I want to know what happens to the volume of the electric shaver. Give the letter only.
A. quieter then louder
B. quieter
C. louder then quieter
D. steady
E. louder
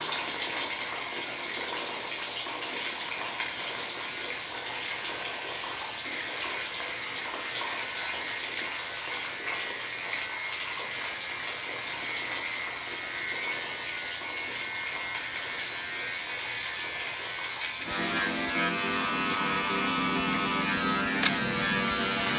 E.